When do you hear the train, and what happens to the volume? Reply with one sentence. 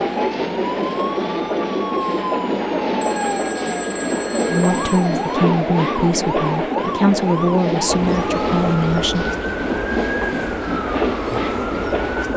You can hear the train from 0.0 to 12.3 s, at a steady volume.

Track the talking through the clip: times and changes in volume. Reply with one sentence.
You can hear the talking from 4.5 to 9.3 s, at a steady volume.